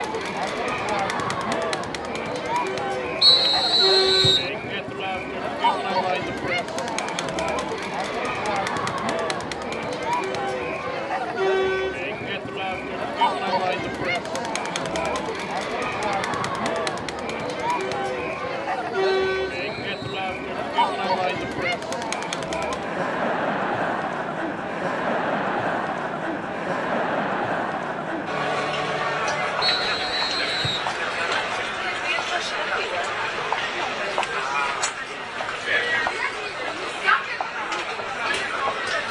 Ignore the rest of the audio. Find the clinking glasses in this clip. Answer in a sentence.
The clinking glasses can't be heard in this clip.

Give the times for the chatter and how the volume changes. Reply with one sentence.
The chatter can be heard from 0.0 to 39.0 s, at a steady volume.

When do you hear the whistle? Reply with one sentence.
You can hear the whistle from 3.2 to 4.5 s, from 19.0 to 20.3 s and from 29.6 to 30.9 s.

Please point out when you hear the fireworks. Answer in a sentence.
The fireworks can't be heard in this clip.